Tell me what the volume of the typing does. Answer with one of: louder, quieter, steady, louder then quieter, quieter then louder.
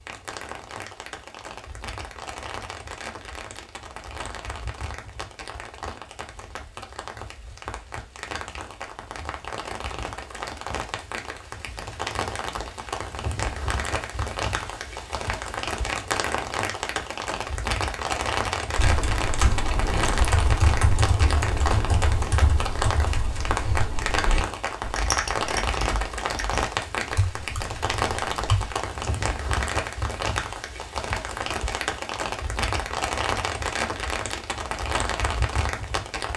quieter.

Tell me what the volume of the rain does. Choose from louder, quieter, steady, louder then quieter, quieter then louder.
louder.